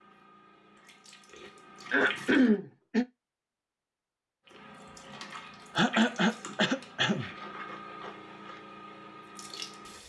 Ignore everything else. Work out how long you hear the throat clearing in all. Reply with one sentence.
The throat clearing can be heard for 3 seconds in total.